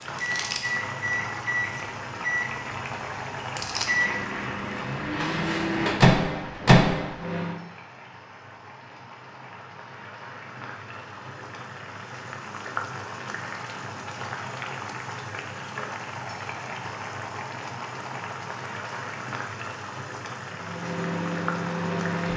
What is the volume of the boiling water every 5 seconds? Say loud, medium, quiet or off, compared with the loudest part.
loud, medium, loud, loud, loud.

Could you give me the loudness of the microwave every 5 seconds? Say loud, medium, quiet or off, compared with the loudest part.
medium, loud, off, off, medium.